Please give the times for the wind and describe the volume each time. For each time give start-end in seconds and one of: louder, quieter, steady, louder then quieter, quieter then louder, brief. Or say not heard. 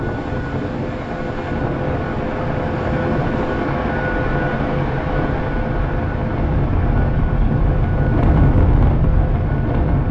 0.0-10.0 louder.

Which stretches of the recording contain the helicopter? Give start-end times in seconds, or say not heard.
0.0-10.0.